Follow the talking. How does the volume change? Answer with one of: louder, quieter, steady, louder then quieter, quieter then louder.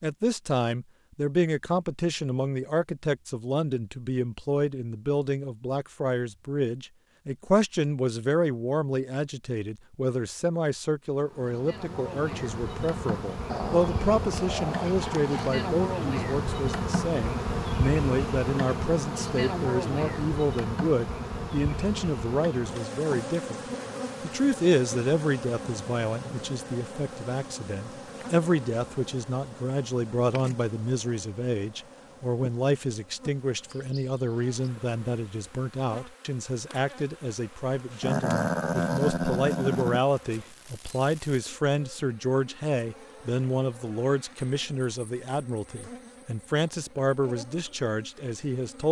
steady.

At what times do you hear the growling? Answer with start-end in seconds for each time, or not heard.
13.4-15.5, 38.0-40.0.